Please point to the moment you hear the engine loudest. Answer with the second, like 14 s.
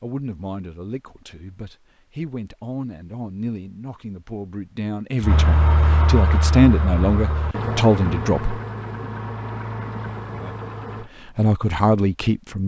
6 s.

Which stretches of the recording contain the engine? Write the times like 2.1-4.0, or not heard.
5.2-11.1.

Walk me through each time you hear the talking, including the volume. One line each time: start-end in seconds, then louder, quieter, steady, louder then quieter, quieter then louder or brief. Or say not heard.
0.0-8.6 louder
11.0-12.6 brief.